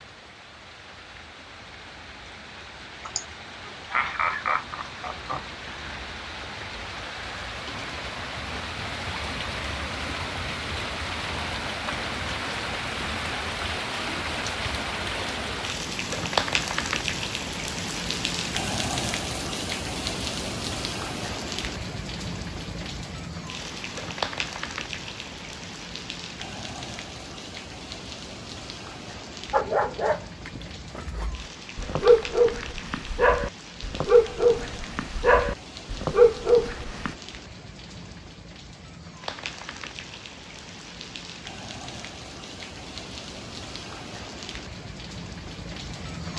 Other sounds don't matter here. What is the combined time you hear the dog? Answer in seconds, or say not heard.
8 s.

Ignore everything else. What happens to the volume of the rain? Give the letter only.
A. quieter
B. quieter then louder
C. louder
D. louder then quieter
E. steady
D.